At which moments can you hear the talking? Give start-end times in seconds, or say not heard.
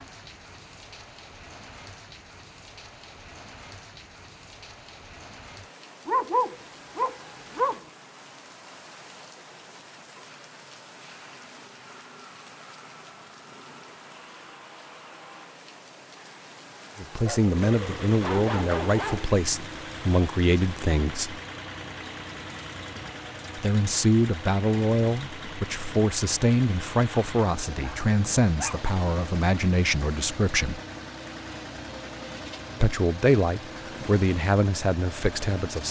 16.9-21.4, 23.6-30.8, 32.8-35.8.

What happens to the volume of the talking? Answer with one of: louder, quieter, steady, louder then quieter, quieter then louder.
steady.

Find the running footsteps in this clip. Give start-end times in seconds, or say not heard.
not heard.